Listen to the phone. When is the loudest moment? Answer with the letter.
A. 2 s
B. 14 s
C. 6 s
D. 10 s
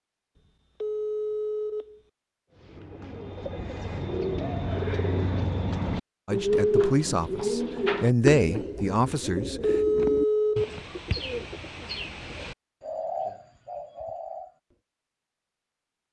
D.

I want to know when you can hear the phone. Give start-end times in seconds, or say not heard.
0.8-2.0, 9.6-10.8.